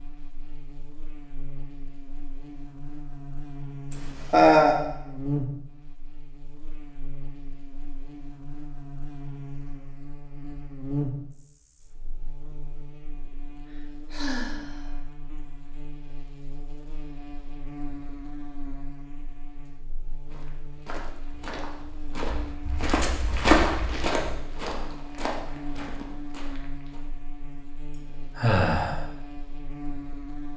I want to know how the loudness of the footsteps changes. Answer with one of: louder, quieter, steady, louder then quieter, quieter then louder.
louder then quieter.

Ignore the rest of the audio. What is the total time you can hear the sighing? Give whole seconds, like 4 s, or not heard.
2 s.